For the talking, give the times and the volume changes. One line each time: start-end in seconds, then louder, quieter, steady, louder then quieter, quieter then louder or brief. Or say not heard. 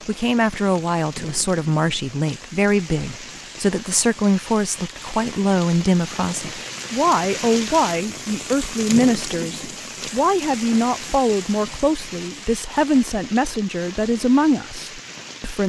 0.1-15.6 steady.